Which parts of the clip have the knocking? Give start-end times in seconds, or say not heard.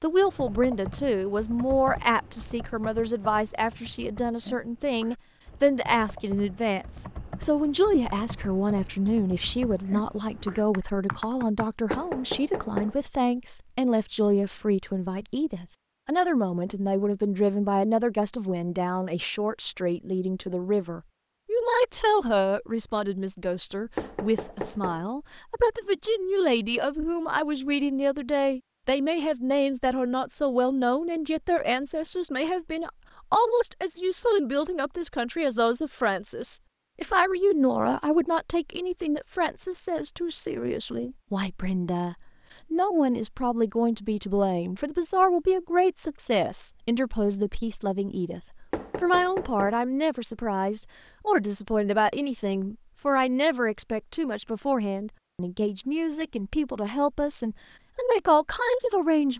11.9-12.9, 23.9-25.1, 48.7-49.8.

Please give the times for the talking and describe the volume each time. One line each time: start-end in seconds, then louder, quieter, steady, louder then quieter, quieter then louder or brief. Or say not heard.
0.0-59.3 steady.